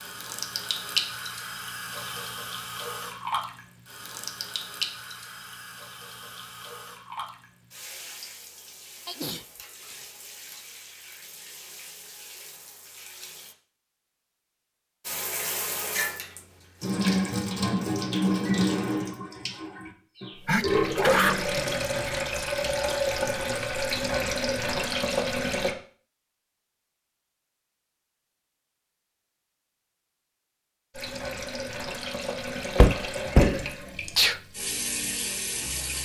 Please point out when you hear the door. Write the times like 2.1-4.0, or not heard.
32.8-33.6.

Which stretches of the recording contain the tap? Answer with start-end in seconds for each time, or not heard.
0.0-13.6, 15.1-25.8, 30.9-36.0.